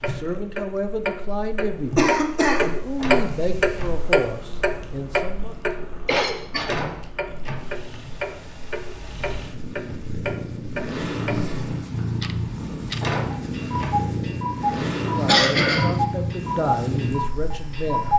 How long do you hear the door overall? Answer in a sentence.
The door can be heard for 3 seconds in total.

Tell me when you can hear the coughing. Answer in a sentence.
The coughing can be heard from 1.9 to 2.7 s, from 6.0 to 6.7 s and from 14.8 to 16.0 s.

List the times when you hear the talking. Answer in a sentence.
The talking can be heard from 0.0 to 5.5 s and from 15.1 to 18.1 s.